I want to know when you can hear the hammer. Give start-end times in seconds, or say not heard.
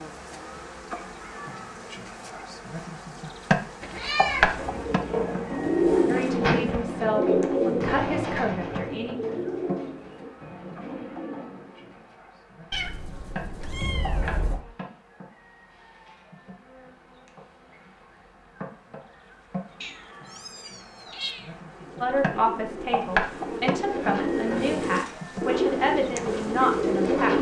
not heard.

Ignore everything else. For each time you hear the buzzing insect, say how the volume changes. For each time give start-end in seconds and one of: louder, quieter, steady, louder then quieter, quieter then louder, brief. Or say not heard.
0.0-27.3 quieter then louder.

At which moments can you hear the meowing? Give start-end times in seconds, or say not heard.
3.8-4.5, 12.7-14.6, 19.8-21.5.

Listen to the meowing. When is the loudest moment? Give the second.
4 s.